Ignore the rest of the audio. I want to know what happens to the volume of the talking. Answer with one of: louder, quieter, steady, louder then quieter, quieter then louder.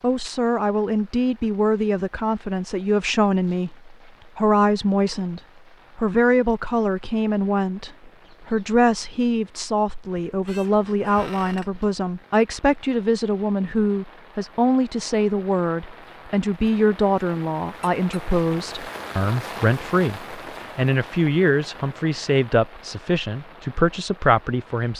steady.